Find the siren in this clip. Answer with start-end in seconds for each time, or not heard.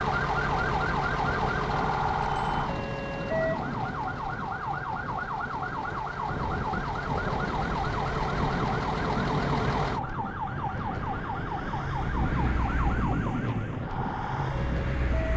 0.0-15.3.